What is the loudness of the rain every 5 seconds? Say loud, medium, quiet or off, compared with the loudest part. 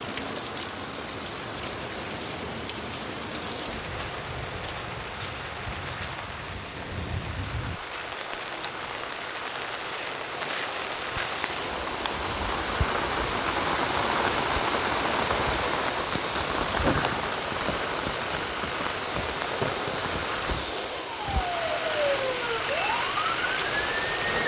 medium, medium, loud, loud, medium.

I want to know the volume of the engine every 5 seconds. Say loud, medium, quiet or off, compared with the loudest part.
medium, medium, medium, loud, loud.